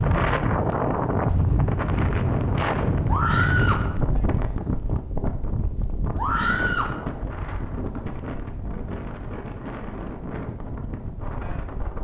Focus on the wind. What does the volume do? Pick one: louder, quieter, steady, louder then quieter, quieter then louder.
quieter.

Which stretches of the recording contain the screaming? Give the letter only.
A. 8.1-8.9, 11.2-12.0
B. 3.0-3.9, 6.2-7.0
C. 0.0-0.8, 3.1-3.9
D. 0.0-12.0
B.